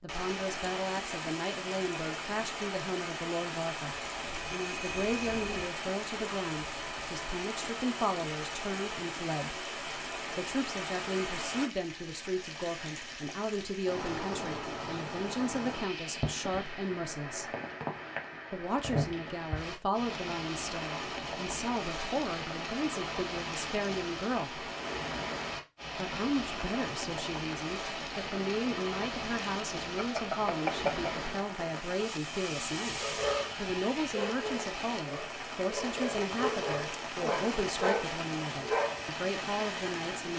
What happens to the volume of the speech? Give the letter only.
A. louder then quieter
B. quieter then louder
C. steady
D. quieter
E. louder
C.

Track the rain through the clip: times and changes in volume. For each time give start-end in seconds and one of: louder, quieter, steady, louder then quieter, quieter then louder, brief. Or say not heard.
0.1-40.3 steady.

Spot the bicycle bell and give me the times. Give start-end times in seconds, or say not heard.
4.2-5.7, 29.9-31.2.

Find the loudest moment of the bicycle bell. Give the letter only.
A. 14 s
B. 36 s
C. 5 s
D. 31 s
D.